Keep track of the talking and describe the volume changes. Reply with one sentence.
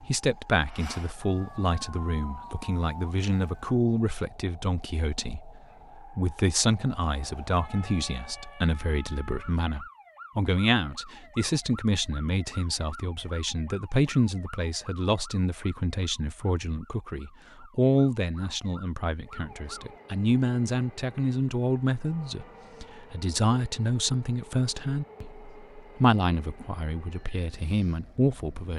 The loudness of the talking stays about the same.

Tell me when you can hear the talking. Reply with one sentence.
You can hear the talking from 0.0 to 28.7 s.